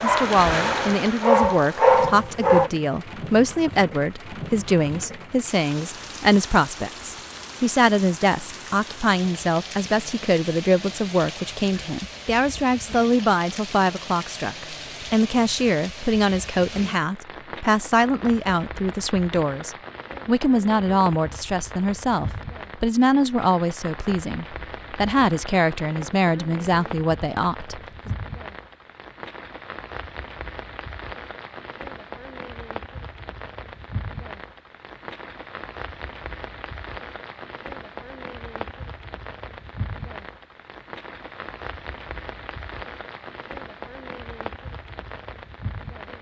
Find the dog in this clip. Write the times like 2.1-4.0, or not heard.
0.0-2.7.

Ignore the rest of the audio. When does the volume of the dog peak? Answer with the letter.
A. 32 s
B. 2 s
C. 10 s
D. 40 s
B.